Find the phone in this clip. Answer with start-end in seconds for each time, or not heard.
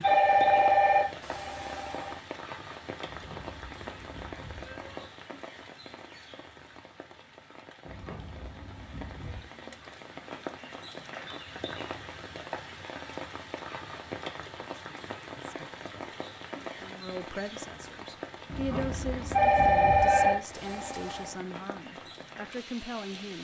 0.0-2.1, 19.3-21.3.